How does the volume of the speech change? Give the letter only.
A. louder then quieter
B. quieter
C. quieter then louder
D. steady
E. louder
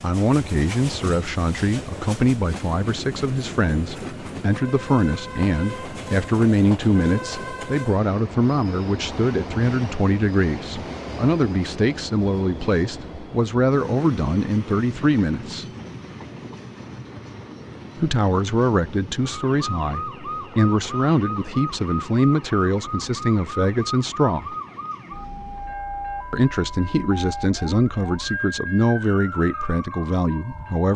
D.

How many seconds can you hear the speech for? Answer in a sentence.
The speech can be heard for 27 seconds in total.